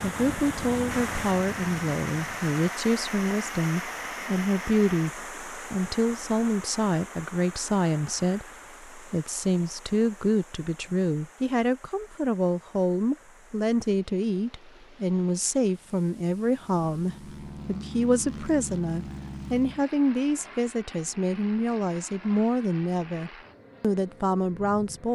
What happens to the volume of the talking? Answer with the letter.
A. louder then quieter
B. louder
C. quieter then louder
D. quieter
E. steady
E.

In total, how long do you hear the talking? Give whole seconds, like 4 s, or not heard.
25 s.